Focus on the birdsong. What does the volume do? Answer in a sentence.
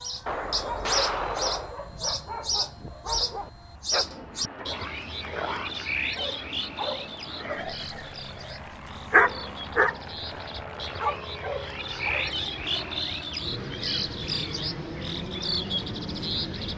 The volume of the birdsong goes down, then up.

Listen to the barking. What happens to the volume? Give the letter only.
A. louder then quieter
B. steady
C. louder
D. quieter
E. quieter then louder
C.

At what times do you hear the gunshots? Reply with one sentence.
The gunshots can be heard from 0.2 to 1.8 s.